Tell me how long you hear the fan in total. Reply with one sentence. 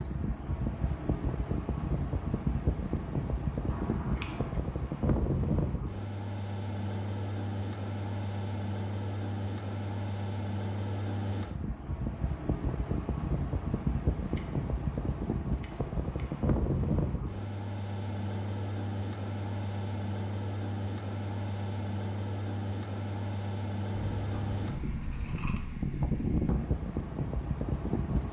The fan can be heard for 28 seconds in total.